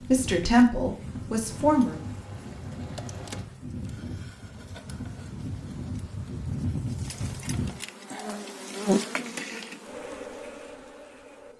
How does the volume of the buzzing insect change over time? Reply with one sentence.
The volume of the buzzing insect goes up.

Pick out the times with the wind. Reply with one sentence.
The wind can be heard from 0.0 to 7.7 s.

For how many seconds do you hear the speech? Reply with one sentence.
You can hear the speech for 2 seconds altogether.